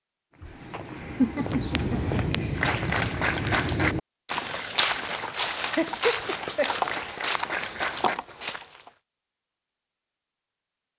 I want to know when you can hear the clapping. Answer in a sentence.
The clapping can be heard from 2.5 to 8.2 s.